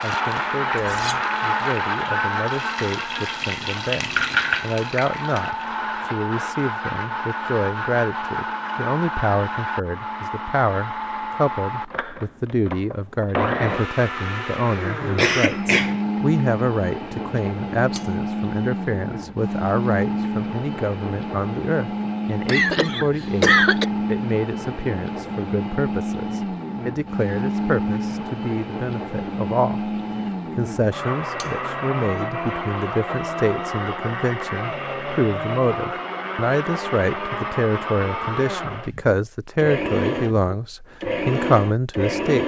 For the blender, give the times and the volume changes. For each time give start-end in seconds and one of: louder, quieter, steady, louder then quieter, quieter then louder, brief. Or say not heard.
0.0-42.4 steady.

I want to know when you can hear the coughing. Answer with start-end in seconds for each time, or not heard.
15.2-15.9, 22.4-23.9.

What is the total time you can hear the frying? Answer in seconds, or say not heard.
6 s.